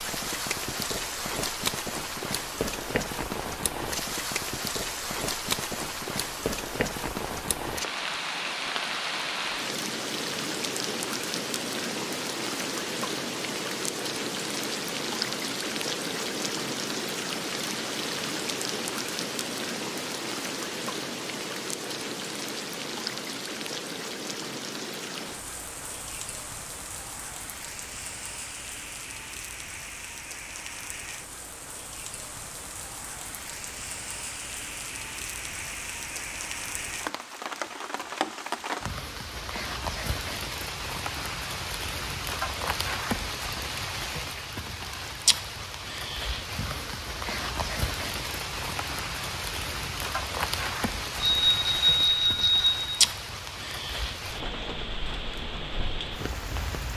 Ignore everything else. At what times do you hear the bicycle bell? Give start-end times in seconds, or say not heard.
51.2-52.9.